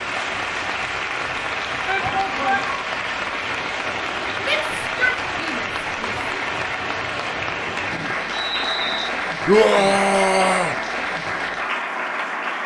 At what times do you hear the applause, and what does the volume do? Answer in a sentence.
You can hear the applause from 0.0 to 12.6 s, at a steady volume.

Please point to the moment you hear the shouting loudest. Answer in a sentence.
The volume of the shouting peaks at 10 seconds.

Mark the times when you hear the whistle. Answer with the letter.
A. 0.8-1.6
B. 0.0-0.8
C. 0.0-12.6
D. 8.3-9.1
D.